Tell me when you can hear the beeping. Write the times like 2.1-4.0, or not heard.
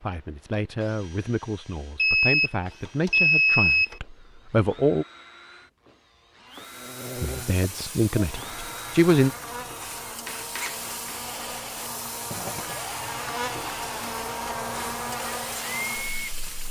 1.9-4.0.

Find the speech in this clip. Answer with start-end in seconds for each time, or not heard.
0.0-5.0, 7.2-9.3.